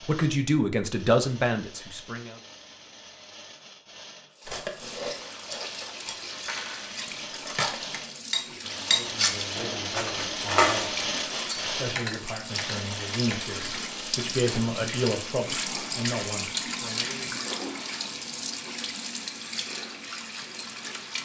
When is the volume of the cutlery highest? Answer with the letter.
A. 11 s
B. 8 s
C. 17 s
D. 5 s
A.